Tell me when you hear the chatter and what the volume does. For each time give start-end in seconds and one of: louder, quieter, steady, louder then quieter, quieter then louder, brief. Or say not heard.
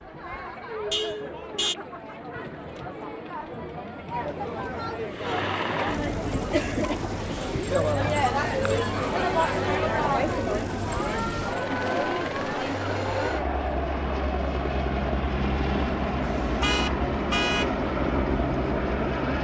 0.0-19.4 louder then quieter.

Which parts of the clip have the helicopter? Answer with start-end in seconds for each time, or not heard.
5.0-19.4.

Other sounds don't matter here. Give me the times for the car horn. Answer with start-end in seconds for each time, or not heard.
0.9-1.8, 16.2-17.7.